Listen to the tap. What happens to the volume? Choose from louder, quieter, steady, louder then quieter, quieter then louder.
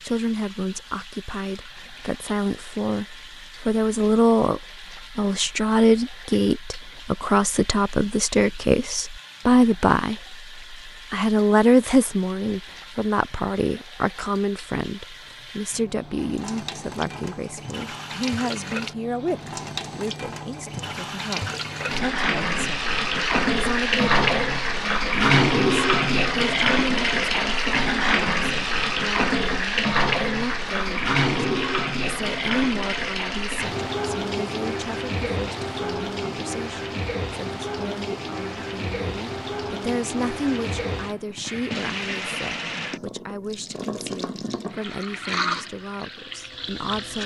louder then quieter.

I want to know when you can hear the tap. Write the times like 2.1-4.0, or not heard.
0.0-47.2.